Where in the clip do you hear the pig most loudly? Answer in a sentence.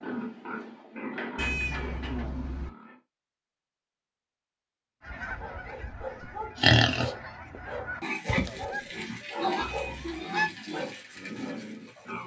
The loudest moment of the pig is at 7 seconds.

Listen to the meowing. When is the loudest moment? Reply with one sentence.
The volume of the meowing peaks at 2 seconds.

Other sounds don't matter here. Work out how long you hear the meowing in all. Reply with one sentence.
You can hear the meowing for 2 seconds altogether.